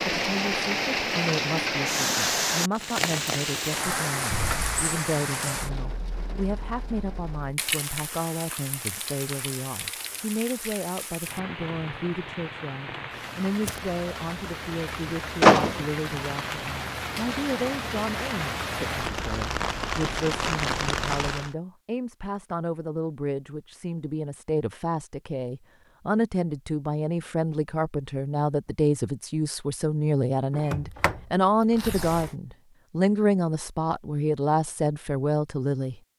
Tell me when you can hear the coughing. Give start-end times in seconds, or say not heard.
not heard.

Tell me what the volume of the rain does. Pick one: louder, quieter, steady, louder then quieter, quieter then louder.
quieter then louder.